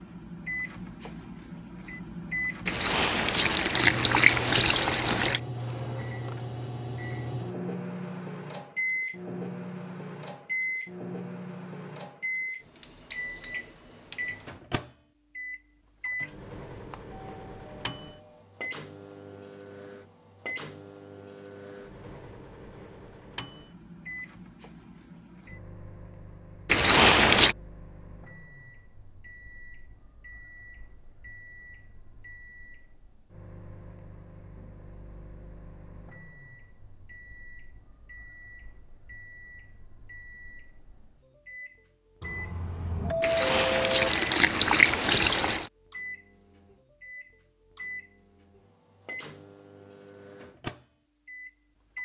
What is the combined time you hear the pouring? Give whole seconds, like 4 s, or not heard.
6 s.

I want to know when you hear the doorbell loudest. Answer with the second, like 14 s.
43 s.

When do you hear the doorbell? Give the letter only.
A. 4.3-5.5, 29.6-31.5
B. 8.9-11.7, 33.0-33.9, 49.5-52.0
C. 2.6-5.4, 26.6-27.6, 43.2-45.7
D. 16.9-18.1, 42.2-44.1
D.